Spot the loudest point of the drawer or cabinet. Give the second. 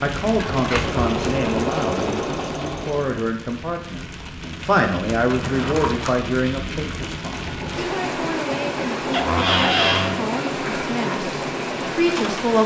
10 s.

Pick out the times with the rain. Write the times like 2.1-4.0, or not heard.
0.0-12.6.